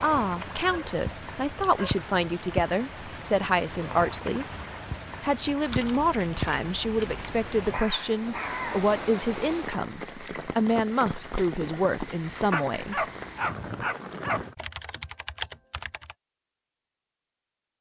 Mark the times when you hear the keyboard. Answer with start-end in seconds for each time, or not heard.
5.7-7.2, 14.6-16.1.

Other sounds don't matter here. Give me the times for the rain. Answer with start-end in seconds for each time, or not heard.
0.0-14.6.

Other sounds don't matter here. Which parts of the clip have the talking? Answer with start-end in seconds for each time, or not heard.
0.0-4.5, 5.2-13.1.